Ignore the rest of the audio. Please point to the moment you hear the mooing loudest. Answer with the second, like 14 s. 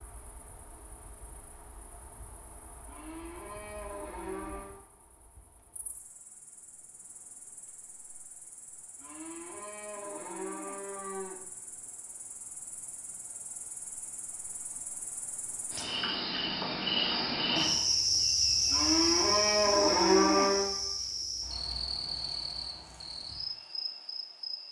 20 s.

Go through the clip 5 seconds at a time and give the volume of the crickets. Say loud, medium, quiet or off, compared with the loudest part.
quiet, quiet, quiet, loud, medium.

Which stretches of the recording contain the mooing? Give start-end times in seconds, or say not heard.
2.9-4.8, 9.0-11.4, 18.7-20.7.